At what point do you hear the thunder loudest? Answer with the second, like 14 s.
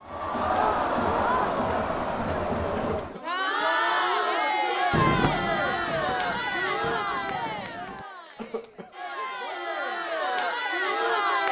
5 s.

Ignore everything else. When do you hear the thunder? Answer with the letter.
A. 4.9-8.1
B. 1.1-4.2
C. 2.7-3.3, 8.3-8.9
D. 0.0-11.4
A.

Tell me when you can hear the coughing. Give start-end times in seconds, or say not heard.
2.7-3.3, 8.3-8.9.